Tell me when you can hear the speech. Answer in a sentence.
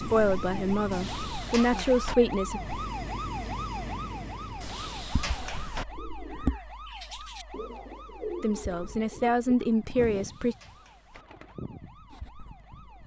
You can hear the speech from 0.0 to 2.6 s and from 8.4 to 10.6 s.